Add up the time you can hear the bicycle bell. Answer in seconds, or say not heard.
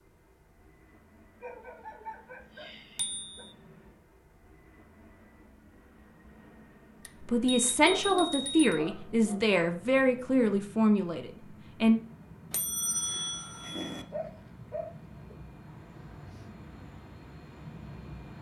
4 s.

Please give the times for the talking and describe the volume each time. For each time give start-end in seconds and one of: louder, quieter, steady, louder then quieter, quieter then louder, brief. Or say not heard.
7.2-12.0 steady.